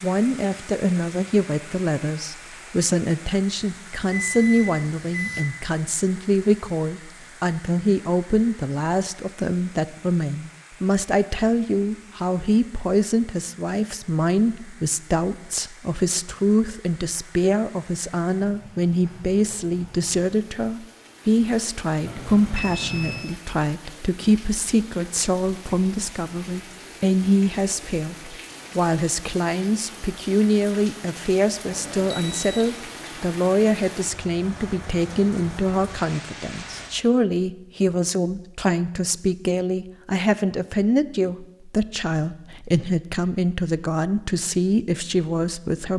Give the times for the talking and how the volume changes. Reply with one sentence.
The talking can be heard from 0.0 to 45.9 s, at a steady volume.